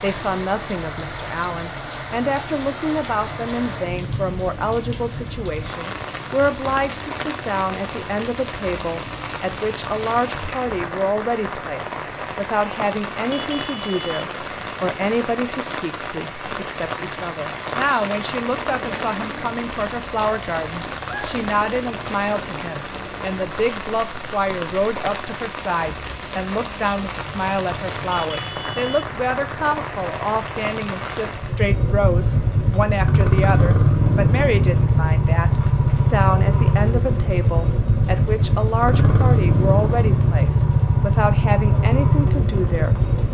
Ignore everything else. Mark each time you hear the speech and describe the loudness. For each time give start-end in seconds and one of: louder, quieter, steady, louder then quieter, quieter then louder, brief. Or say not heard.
0.0-43.1 steady.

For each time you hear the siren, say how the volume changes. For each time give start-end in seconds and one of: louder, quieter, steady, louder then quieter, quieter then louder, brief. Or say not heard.
not heard.